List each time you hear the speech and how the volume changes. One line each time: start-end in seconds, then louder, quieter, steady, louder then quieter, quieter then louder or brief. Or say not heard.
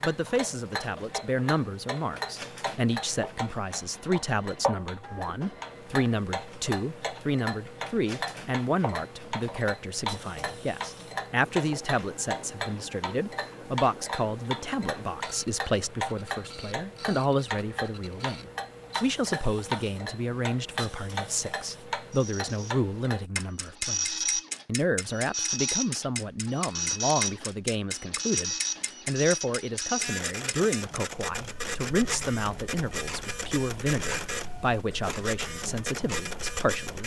0.0-37.0 steady.